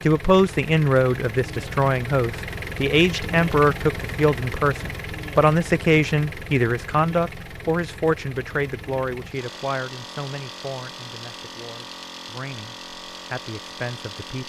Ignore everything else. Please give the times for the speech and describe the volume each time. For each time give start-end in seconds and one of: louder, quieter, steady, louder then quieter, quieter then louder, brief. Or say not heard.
0.0-14.4 quieter.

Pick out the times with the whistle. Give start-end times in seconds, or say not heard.
not heard.